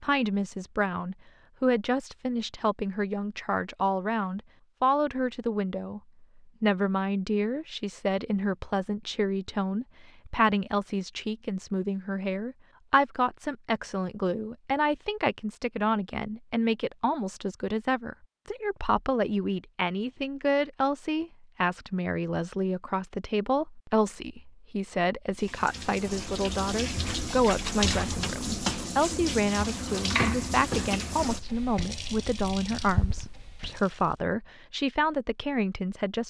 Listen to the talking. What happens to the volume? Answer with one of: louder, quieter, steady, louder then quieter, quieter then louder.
steady.